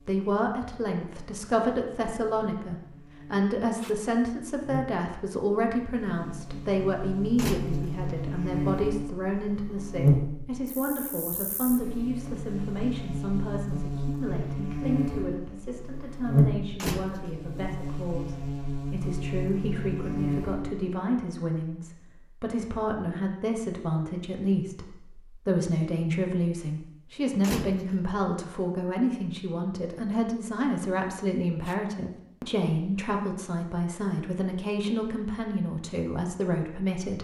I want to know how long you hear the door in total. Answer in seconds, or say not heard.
2 s.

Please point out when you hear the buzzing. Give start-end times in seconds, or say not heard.
0.0-20.9.